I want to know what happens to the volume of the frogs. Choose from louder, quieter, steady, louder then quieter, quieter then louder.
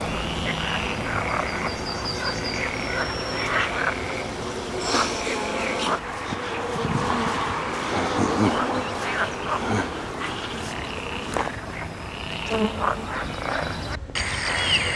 quieter then louder.